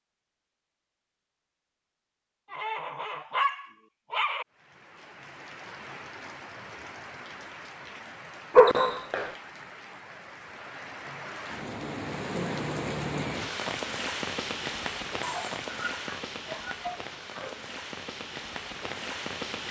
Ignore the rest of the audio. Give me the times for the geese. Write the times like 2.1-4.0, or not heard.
not heard.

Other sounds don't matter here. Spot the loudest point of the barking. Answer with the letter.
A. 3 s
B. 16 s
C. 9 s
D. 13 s
C.